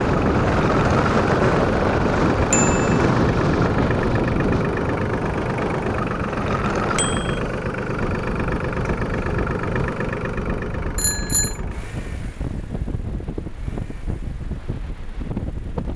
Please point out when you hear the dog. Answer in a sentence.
You can't hear the dog here.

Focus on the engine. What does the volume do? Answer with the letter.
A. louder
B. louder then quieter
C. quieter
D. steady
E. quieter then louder
C.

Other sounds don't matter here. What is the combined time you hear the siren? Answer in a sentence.
You can't hear the siren here.